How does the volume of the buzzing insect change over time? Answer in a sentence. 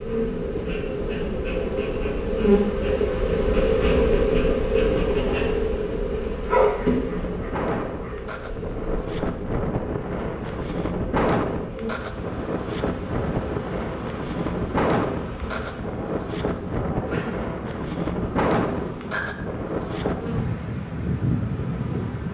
The loudness of the buzzing insect goes down.